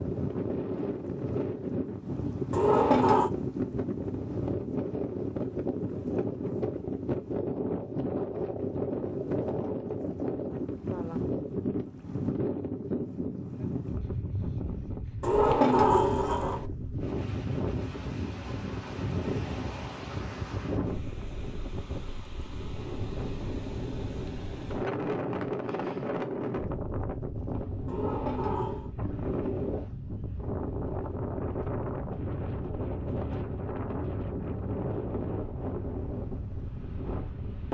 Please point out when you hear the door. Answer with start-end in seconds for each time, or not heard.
2.5-3.3, 15.2-16.7, 27.9-28.9.